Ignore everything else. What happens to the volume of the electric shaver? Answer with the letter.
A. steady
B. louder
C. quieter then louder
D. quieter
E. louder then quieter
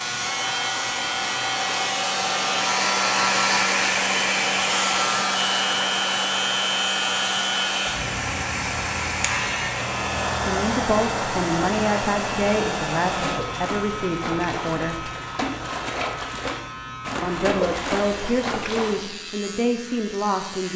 D.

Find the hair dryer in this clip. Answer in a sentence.
The hair dryer can be heard from 0.0 to 13.4 s.